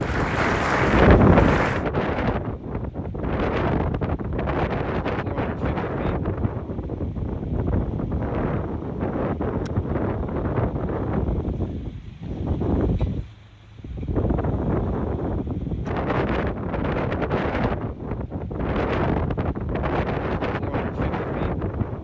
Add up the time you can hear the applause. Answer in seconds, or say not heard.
2 s.